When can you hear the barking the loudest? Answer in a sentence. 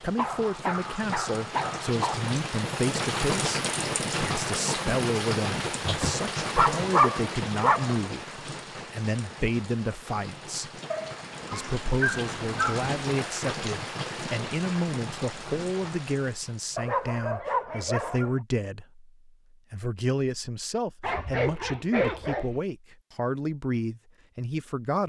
The loudest moment of the barking is at 7 seconds.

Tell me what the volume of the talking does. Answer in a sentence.
The loudness of the talking stays about the same.